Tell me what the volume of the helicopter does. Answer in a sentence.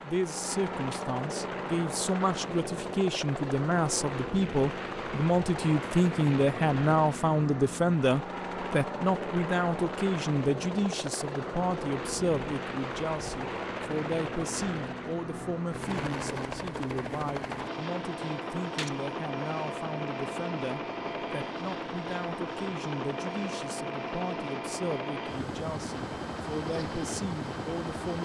The loudness of the helicopter stays about the same.